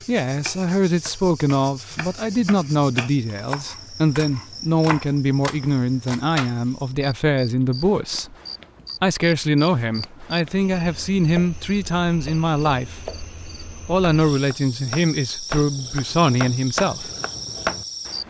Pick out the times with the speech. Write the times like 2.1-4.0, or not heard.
0.1-8.3, 9.0-13.1, 13.8-17.1.